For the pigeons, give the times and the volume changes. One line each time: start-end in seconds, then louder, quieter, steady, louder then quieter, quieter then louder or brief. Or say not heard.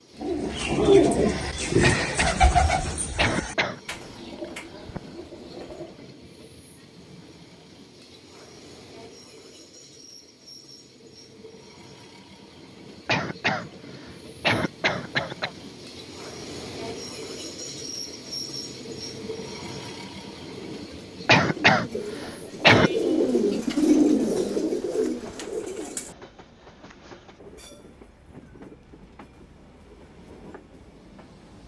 0.2-6.1 quieter
20.4-26.1 louder then quieter.